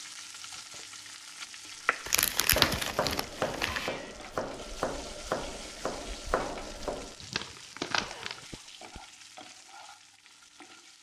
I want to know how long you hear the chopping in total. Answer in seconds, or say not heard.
5 s.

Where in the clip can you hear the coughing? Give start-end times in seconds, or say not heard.
8.0-9.0.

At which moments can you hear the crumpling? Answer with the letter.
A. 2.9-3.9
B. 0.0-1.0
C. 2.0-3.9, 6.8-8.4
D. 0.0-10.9
C.